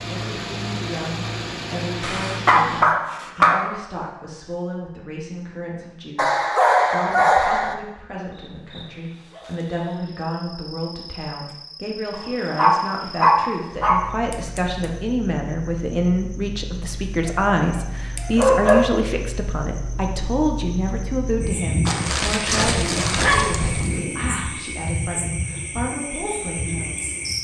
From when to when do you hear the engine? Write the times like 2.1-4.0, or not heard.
0.0-2.9.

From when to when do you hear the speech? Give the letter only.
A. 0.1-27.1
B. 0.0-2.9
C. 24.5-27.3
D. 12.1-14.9
A.